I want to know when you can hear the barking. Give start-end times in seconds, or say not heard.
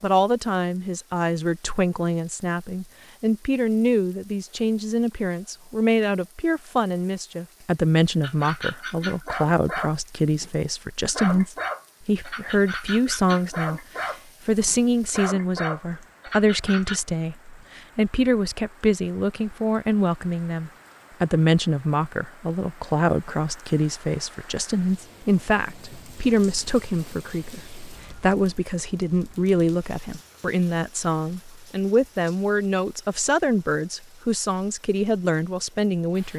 8.2-17.0.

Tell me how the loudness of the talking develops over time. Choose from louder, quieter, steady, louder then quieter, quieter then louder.
steady.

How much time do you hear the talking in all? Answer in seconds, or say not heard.
36 s.